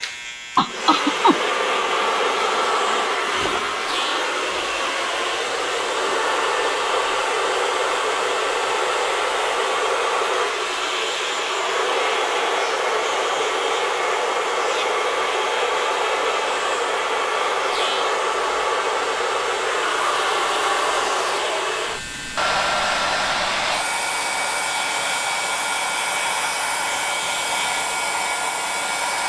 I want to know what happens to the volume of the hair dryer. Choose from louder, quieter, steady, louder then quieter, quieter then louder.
steady.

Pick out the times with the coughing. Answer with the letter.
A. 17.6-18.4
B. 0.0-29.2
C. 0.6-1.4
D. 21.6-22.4
C.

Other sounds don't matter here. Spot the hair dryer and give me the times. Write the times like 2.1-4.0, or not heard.
0.0-29.2.